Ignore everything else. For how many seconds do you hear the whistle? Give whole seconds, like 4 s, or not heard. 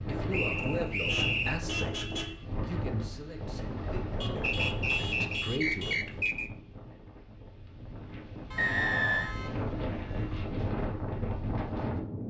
4 s.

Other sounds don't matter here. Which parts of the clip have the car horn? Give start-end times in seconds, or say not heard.
0.9-2.5, 4.2-6.3, 8.5-10.4.